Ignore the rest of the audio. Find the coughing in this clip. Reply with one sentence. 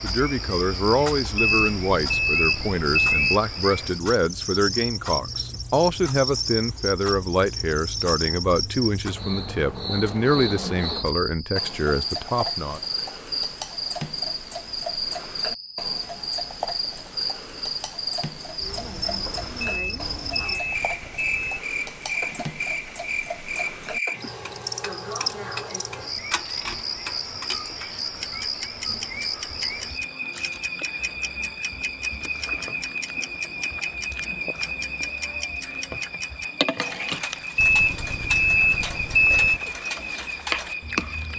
The coughing can't be heard in this clip.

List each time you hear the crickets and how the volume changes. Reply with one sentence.
You can hear the crickets from 0.0 to 41.3 s, at a steady volume.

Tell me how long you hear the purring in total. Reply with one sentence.
You can't hear the purring here.